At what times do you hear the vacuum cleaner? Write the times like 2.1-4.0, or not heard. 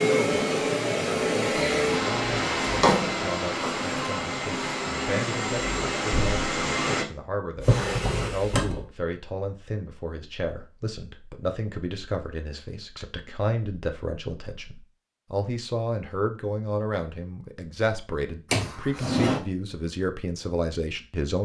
0.0-7.0.